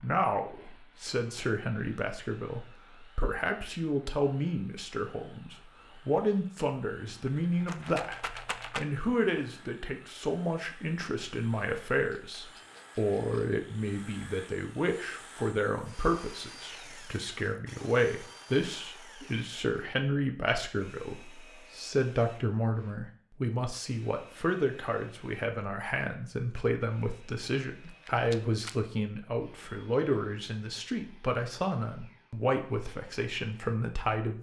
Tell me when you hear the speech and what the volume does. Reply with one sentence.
You can hear the speech from 0.0 to 34.3 s, at a steady volume.